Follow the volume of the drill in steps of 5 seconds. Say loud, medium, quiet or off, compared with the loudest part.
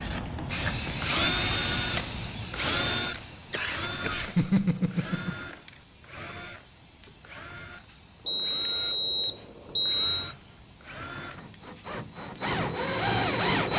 loud, quiet, loud.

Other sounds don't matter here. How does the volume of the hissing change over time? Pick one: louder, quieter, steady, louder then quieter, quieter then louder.
quieter.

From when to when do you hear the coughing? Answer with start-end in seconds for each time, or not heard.
3.5-5.3.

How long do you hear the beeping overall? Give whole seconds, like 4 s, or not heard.
2 s.